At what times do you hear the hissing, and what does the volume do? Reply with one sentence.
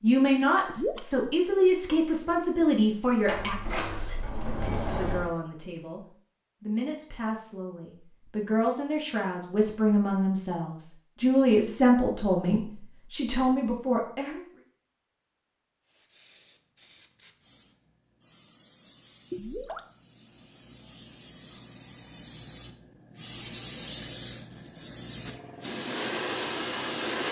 You can hear the hissing from 15.8 to 27.2 s, getting louder.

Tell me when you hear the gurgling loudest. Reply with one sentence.
The volume of the gurgling peaks at 1 second.